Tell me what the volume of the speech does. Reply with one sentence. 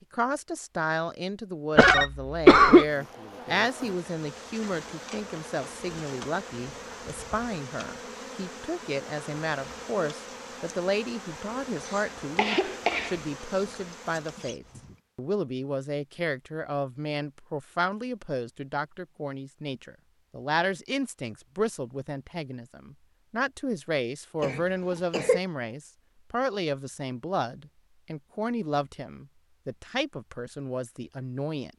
The volume of the speech stays about the same.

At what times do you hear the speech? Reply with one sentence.
The speech can be heard from 0.1 to 31.7 s.